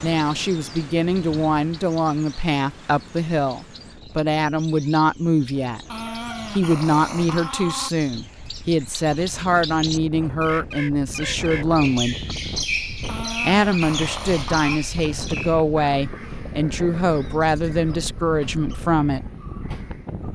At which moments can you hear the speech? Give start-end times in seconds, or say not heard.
0.0-5.8, 6.5-12.2, 13.4-19.2.